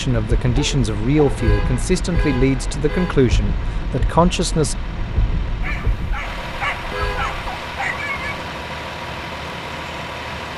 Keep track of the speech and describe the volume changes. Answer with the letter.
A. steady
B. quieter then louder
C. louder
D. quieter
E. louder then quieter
A.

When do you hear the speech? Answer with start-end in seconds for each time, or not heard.
0.0-4.8.